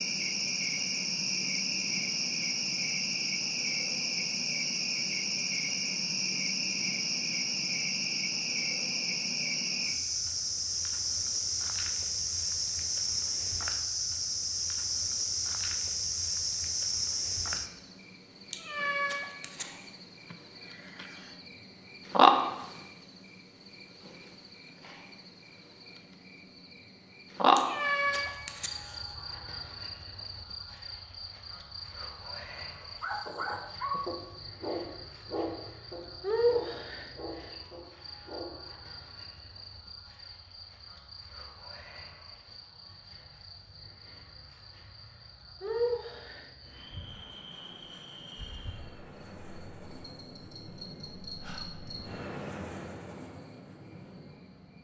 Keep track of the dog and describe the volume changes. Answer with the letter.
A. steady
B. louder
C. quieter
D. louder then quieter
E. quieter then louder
C.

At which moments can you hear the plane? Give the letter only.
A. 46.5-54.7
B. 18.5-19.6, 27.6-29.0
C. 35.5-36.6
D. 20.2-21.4
A.